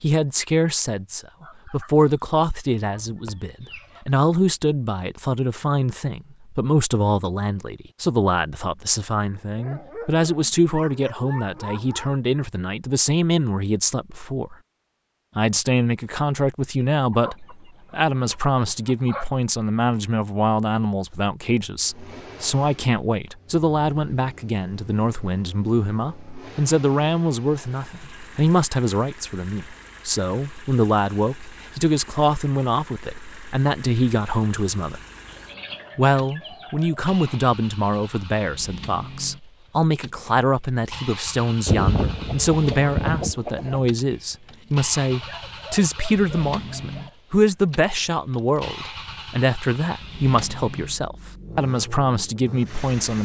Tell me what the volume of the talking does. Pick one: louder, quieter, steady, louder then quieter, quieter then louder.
steady.